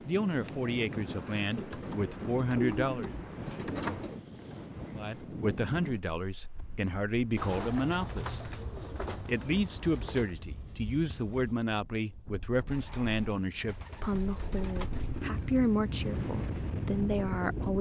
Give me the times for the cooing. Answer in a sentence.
The cooing can be heard from 1.6 to 4.2 s, from 7.3 to 10.3 s and from 12.7 to 15.2 s.